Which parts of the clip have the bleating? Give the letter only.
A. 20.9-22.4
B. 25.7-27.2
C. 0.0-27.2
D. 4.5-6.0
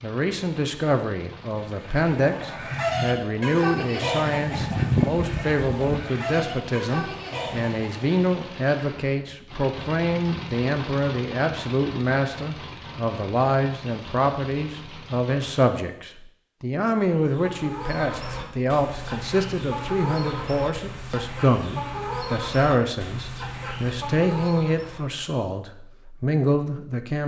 D.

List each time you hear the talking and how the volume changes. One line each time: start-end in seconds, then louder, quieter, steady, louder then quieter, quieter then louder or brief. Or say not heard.
0.0-27.2 steady.